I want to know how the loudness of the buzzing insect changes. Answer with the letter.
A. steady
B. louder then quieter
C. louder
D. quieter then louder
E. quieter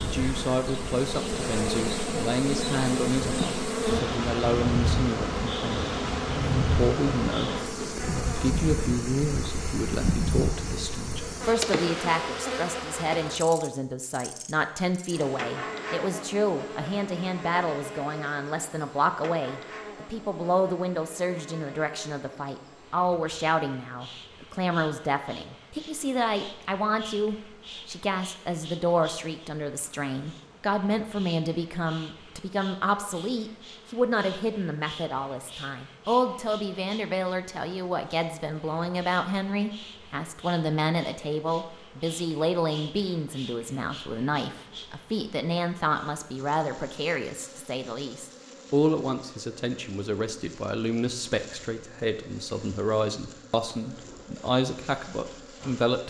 E.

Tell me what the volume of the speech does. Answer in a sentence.
The loudness of the speech stays about the same.